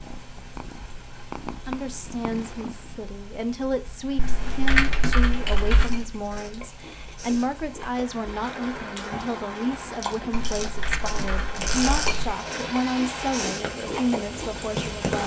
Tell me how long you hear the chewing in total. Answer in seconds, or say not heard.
9 s.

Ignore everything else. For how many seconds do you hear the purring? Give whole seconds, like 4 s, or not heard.
3 s.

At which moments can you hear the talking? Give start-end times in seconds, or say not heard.
1.4-15.2.